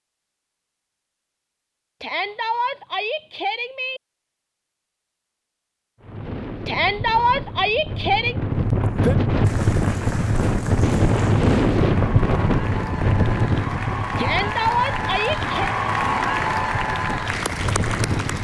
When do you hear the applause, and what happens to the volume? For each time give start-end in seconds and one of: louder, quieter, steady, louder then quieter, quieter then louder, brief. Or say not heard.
9.4-18.3 louder.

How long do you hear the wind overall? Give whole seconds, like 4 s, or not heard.
12 s.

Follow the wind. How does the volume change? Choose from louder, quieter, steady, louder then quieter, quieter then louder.
louder then quieter.